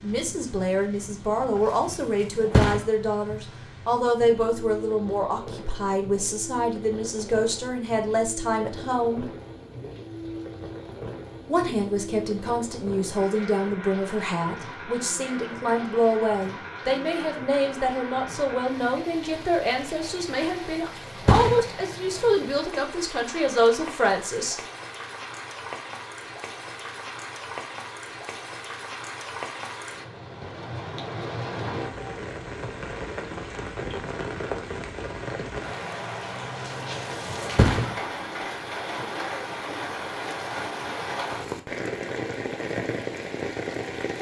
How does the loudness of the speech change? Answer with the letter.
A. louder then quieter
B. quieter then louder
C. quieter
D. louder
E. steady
E.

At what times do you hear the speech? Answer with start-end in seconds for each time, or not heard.
0.0-9.3, 11.4-24.6.